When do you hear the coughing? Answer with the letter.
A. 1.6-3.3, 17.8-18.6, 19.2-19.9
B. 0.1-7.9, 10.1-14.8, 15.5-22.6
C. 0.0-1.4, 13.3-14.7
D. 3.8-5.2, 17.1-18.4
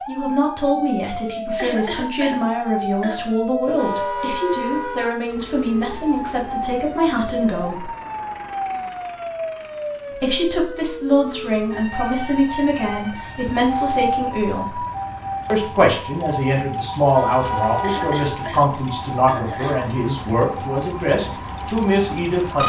A.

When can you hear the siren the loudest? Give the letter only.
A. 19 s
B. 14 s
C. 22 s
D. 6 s
B.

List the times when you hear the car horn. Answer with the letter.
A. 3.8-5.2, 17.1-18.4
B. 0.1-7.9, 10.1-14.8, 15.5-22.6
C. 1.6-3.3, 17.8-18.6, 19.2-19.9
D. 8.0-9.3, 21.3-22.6
A.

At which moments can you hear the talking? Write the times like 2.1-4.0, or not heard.
0.1-7.9, 10.1-14.8, 15.5-22.6.